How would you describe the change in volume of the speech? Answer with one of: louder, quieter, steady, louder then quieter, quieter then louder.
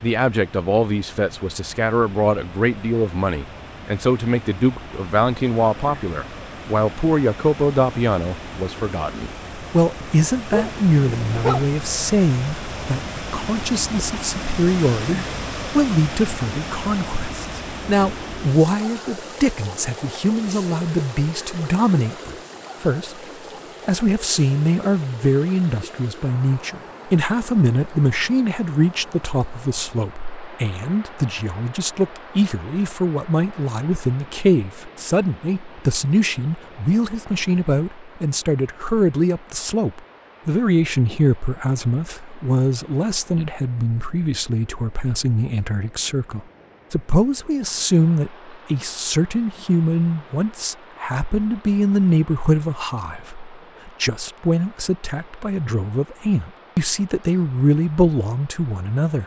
steady.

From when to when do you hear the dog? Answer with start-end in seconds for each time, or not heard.
10.5-11.7.